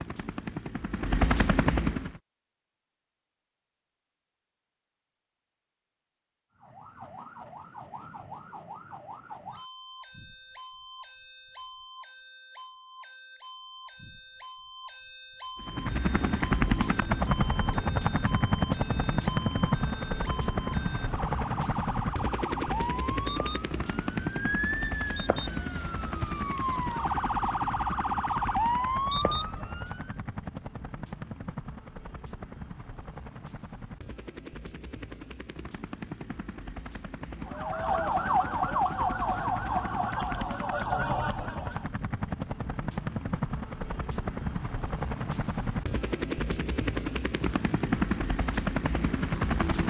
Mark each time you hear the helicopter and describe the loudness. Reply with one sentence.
You can hear the helicopter briefly from 0.0 to 2.2 s; and from 15.6 to 49.8 s, getting quieter then louder.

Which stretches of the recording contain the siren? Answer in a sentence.
The siren can be heard from 6.5 to 30.1 s and from 37.5 to 41.9 s.